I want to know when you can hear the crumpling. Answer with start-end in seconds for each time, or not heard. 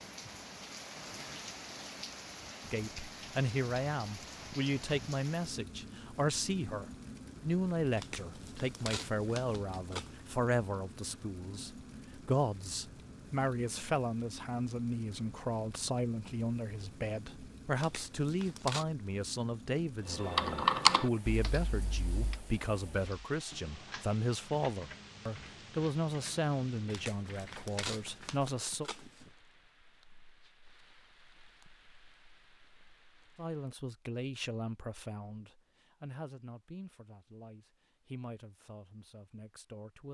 8.0-10.2, 17.8-18.9, 26.9-29.3.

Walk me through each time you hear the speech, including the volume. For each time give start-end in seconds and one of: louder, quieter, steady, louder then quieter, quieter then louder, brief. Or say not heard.
2.7-28.9 steady
33.4-40.0 quieter.